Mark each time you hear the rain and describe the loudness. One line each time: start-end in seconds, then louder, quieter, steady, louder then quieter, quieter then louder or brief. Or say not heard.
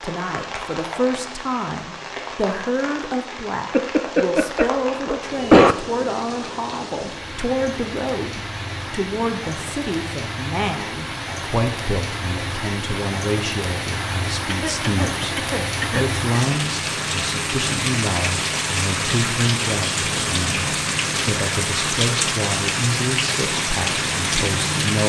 0.0-25.0 louder.